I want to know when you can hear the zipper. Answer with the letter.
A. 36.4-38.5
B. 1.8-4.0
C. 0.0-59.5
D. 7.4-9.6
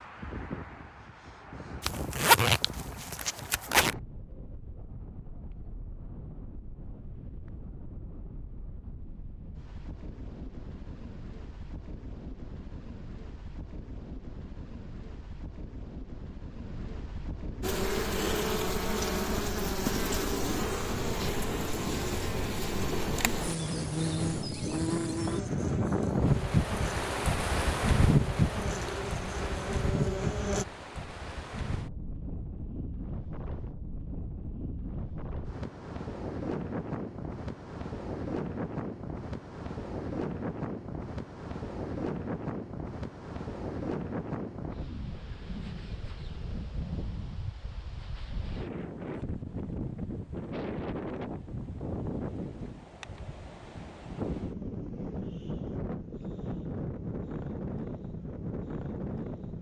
B.